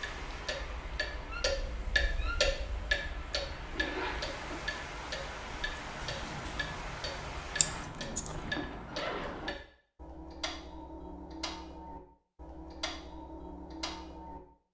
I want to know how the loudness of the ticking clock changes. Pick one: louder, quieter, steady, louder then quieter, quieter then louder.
quieter.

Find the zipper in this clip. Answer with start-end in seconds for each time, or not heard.
3.6-4.7, 7.7-9.6.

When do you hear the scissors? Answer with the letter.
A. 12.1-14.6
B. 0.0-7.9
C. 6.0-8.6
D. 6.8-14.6
C.